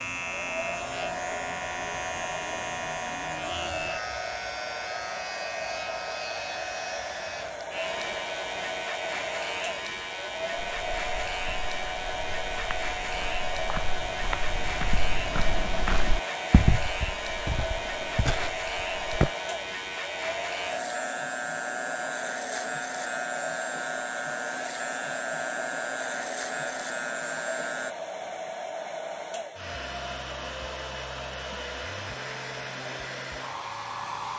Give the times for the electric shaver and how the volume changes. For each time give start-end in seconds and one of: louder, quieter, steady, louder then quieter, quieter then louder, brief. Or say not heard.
0.0-27.9 steady.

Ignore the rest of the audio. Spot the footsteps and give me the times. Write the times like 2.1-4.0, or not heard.
10.6-19.3.